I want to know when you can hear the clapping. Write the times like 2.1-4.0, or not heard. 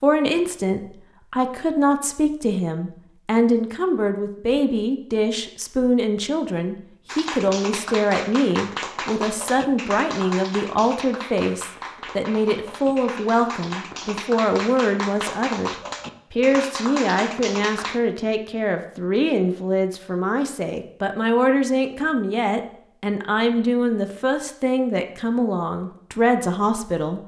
7.0-18.0.